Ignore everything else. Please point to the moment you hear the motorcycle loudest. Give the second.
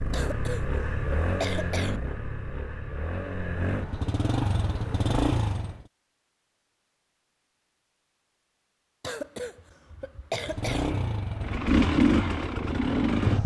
12 s.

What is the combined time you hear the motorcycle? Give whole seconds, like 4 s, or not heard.
9 s.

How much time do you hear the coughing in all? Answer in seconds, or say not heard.
4 s.